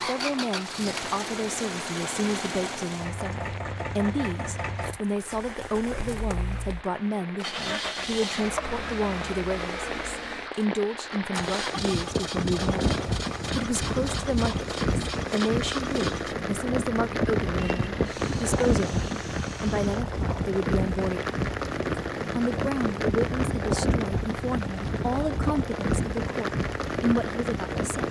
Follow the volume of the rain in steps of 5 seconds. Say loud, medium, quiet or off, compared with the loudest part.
quiet, medium, loud, loud, loud, loud.